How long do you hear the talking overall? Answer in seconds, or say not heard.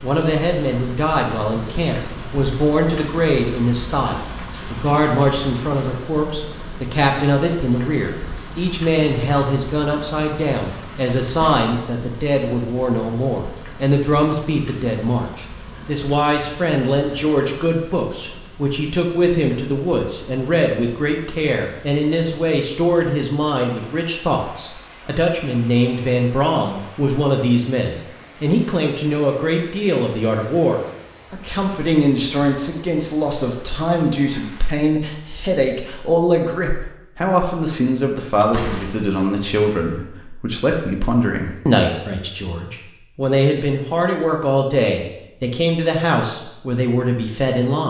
48 s.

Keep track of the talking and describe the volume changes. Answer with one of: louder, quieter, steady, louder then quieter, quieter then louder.
steady.